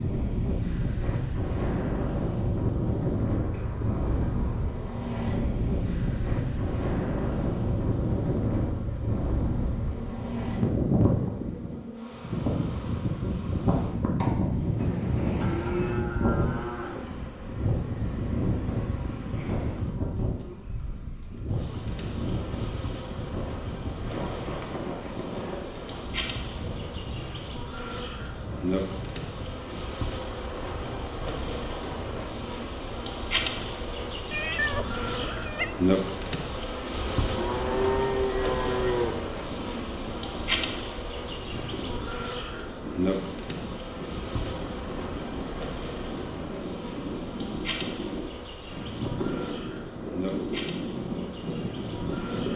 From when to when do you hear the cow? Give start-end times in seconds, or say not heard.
15.2-17.1, 37.2-39.1.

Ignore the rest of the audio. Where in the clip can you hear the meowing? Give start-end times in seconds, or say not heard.
14.8-16.1, 34.3-35.8.